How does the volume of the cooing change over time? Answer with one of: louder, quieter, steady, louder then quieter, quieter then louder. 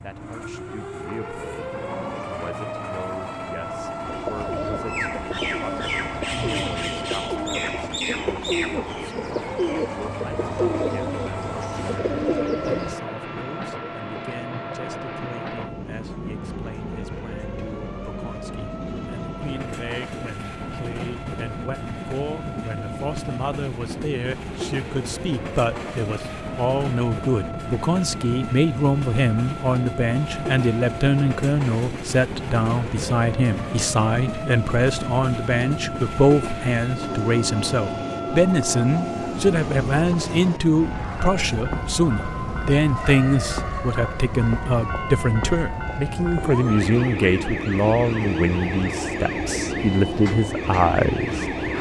steady.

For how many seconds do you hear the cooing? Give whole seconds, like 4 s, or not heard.
9 s.